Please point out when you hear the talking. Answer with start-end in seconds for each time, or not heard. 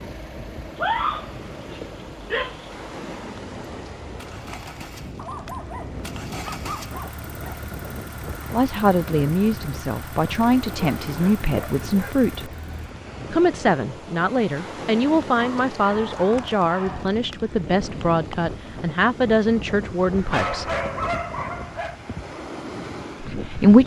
8.5-12.5, 13.3-20.8, 23.2-23.8.